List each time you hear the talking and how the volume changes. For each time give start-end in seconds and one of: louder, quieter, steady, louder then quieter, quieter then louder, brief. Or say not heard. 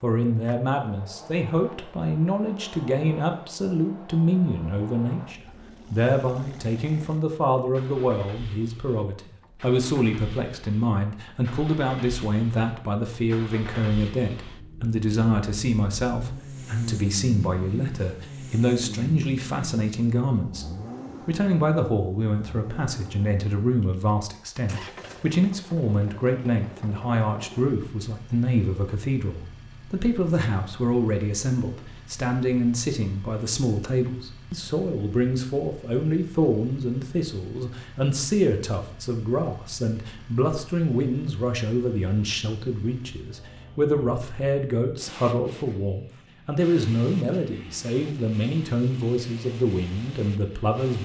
0.0-51.0 steady.